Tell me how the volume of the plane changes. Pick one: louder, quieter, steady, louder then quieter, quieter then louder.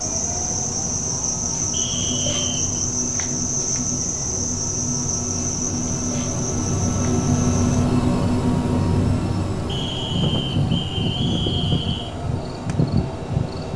louder then quieter.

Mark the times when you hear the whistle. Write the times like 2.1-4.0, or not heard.
1.7-2.8, 9.7-12.2.